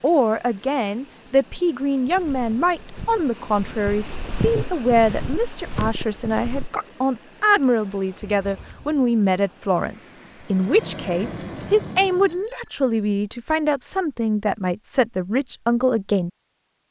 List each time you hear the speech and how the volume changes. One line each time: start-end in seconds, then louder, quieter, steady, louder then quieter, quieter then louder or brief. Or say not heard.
0.0-16.3 steady.